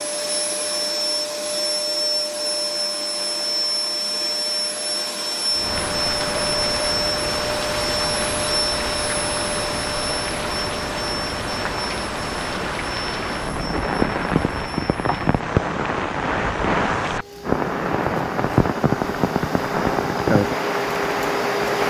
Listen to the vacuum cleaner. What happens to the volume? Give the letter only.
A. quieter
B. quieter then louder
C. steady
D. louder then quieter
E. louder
B.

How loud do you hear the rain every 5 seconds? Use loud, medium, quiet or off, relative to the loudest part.
off, medium, loud, loud, loud.